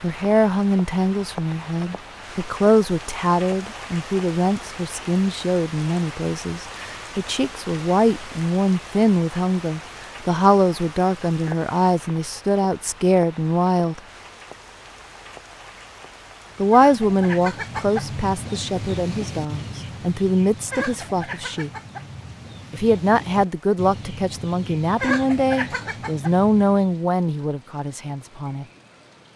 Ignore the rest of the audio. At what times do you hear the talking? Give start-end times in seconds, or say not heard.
0.0-14.0, 16.6-21.7, 22.7-28.6.